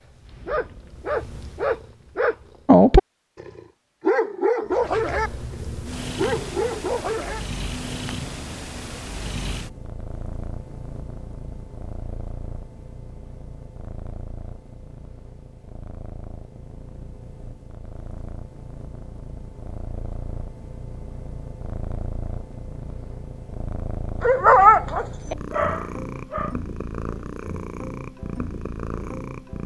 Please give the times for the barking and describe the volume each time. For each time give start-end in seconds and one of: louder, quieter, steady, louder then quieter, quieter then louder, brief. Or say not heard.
0.5-5.3 louder then quieter
6.2-7.4 brief
24.2-26.5 brief.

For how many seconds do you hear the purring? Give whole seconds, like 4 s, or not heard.
28 s.